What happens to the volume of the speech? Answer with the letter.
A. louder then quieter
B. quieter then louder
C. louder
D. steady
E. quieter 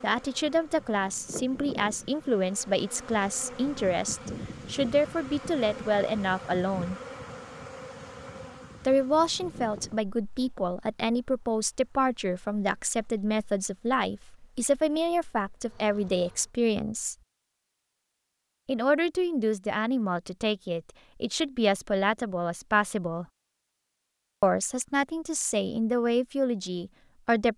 D.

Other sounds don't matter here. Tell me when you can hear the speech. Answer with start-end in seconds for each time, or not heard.
0.0-7.0, 8.8-17.1, 18.6-23.2, 24.4-27.5.